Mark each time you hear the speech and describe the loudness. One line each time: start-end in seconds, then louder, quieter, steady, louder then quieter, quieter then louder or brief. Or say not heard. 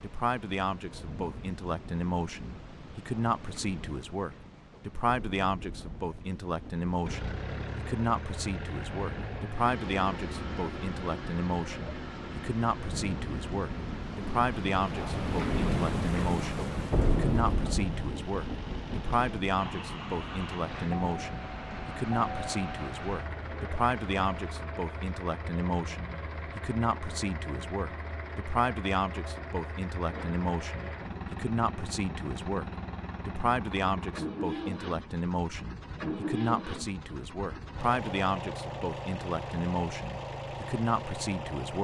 0.0-41.7 steady.